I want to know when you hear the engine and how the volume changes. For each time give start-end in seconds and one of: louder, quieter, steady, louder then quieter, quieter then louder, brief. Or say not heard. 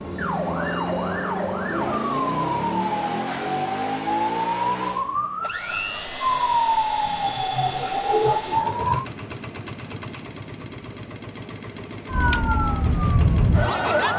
0.0-14.1 quieter.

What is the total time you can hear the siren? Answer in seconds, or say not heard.
11 s.